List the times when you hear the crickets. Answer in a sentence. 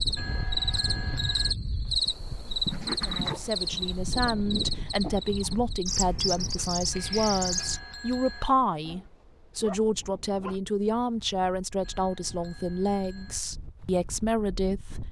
You can hear the crickets from 0.0 to 7.8 s.